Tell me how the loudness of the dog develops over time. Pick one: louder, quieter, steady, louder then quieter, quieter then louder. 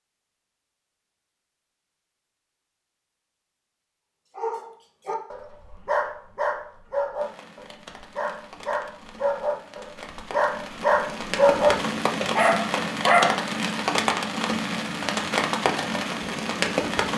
louder.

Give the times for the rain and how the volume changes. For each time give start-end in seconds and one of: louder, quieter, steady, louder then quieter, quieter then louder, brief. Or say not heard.
7.2-17.1 louder.